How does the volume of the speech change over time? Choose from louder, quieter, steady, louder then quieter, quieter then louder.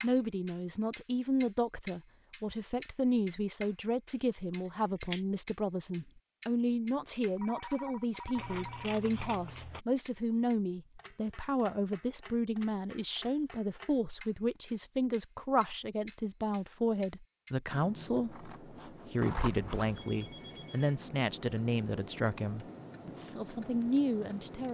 steady.